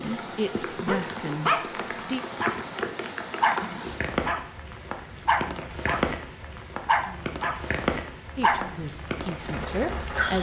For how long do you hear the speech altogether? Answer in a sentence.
The speech can be heard for 4 seconds in total.